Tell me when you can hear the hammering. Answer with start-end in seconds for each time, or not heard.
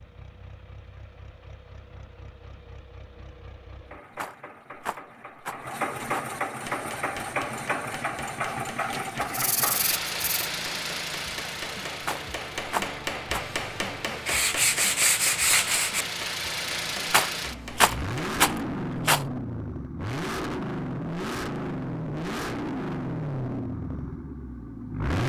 6.6-18.3.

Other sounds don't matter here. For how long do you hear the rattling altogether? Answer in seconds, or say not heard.
6 s.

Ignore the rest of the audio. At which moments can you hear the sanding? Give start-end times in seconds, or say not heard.
8.4-10.5, 14.2-16.1.